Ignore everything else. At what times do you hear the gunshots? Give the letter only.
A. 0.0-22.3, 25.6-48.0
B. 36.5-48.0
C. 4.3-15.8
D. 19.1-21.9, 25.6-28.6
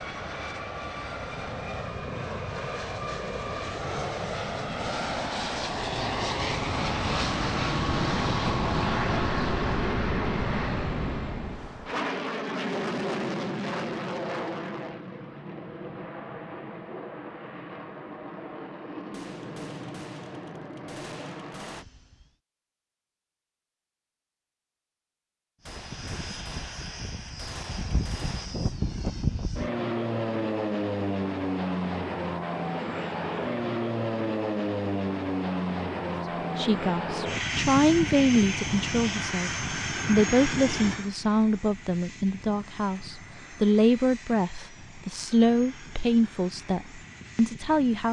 D.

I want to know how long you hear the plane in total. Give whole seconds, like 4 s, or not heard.
45 s.